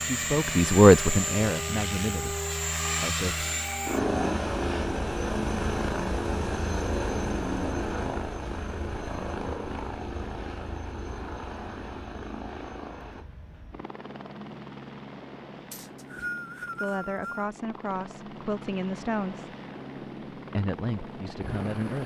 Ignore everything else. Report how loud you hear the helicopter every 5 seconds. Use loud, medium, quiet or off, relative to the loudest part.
loud, loud, medium, quiet, medium.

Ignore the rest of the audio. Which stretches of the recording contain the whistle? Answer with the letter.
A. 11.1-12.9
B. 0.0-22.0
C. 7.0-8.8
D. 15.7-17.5
D.